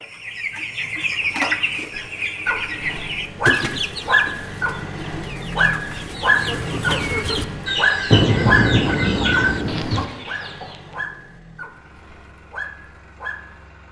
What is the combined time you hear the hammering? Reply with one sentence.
You can't hear the hammering here.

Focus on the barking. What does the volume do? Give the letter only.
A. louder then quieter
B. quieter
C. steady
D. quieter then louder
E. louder
A.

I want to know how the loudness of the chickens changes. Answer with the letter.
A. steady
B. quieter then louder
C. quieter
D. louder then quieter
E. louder
B.